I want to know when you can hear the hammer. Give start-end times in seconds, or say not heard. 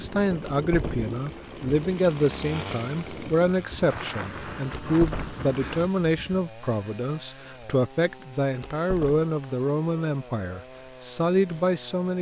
not heard.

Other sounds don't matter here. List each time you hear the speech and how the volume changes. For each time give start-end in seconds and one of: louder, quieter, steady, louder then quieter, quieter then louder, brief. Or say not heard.
0.0-12.1 steady.